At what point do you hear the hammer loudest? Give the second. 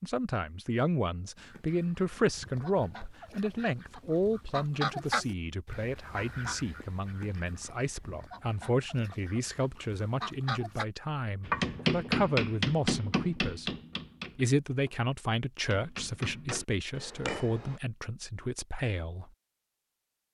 12 s.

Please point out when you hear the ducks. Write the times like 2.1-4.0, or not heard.
1.4-10.8.